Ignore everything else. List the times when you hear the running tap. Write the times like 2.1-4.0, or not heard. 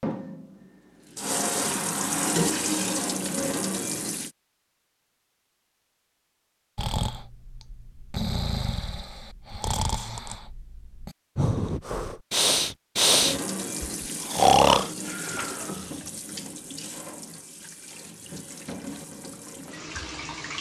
0.0-4.3, 13.2-20.5.